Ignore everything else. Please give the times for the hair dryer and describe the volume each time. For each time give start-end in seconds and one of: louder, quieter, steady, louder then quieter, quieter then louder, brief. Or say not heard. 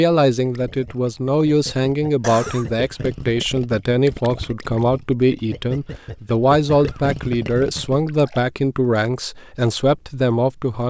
not heard.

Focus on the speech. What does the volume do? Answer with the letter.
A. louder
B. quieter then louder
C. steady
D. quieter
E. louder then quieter
C.